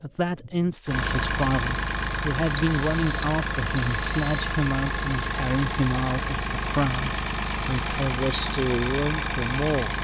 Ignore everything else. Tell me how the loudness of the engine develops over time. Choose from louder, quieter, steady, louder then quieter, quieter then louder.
steady.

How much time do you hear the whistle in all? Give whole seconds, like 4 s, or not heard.
2 s.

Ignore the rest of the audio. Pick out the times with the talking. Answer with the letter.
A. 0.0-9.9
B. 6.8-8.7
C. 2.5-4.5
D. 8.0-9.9
A.